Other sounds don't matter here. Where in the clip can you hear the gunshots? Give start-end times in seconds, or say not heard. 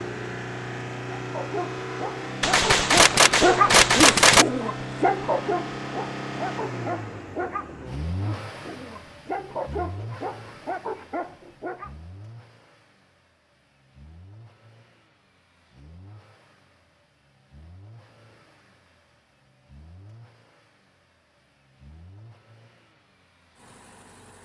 2.4-4.5.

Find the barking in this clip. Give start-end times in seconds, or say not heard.
1.3-11.9.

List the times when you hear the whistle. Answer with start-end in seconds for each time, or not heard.
not heard.